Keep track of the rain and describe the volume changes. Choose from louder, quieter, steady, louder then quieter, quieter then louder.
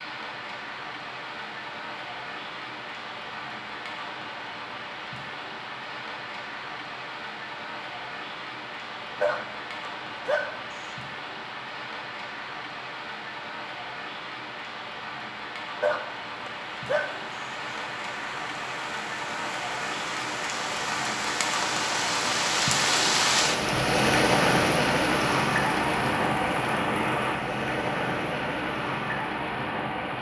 louder.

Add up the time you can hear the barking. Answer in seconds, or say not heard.
3 s.